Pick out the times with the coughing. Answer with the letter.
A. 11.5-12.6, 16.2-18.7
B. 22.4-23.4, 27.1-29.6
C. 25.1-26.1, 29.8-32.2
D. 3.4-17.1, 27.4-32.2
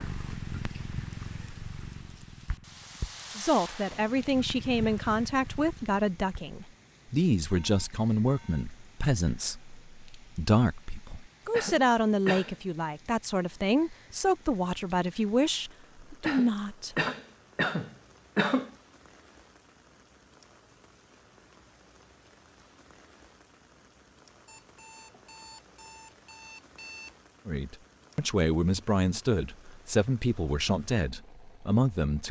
A.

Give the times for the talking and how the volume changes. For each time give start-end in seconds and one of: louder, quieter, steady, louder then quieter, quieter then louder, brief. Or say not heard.
3.4-17.1 steady
27.4-32.2 steady.